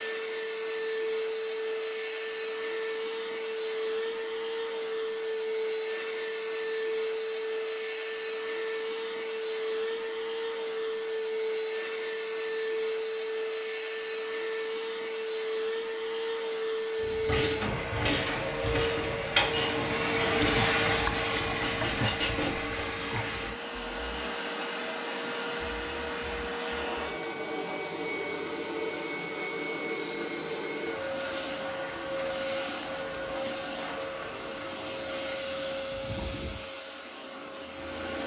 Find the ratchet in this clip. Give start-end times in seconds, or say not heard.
17.0-23.2.